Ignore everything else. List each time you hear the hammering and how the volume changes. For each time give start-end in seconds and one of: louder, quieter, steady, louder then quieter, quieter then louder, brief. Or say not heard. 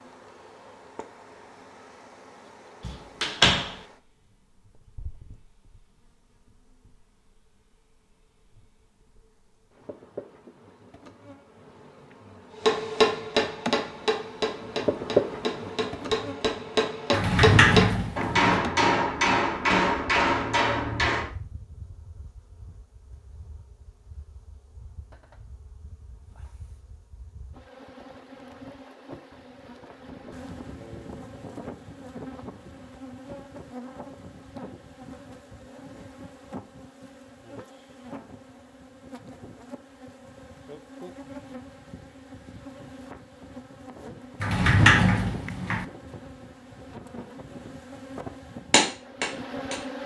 12.6-21.3 quieter then louder
48.7-49.9 brief.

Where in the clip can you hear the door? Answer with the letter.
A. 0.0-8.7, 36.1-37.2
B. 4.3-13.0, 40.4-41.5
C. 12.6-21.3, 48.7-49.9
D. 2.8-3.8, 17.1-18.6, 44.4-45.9
D.